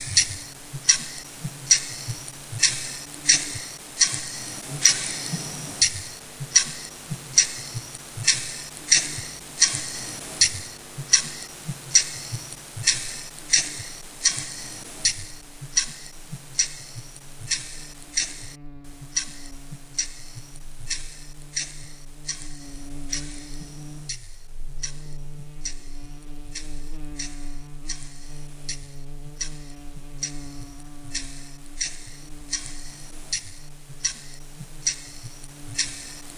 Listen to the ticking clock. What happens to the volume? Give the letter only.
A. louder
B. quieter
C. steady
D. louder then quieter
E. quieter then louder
E.